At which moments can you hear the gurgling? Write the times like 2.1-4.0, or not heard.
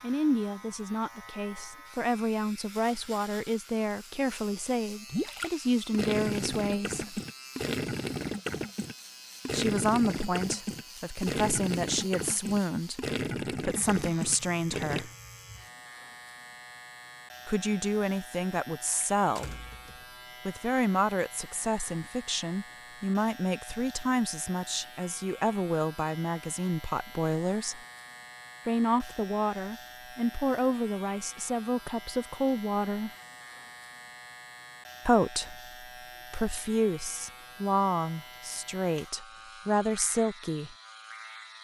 5.1-15.1.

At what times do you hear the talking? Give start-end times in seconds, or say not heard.
0.0-7.2, 9.5-15.1, 17.4-19.6, 20.4-27.8, 28.6-33.1, 35.0-40.8.